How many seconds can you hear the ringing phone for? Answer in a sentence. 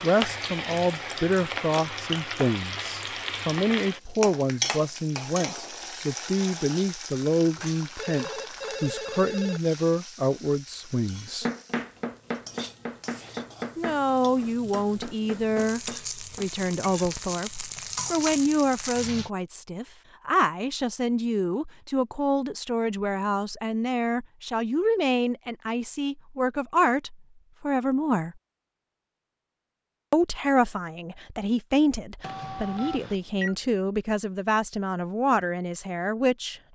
You can hear the ringing phone for 3 seconds altogether.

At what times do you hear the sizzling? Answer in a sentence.
You can hear the sizzling from 0.0 to 19.3 s.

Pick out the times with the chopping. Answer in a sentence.
You can hear the chopping from 11.4 to 16.5 s.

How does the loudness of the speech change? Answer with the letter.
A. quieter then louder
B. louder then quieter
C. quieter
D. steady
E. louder
D.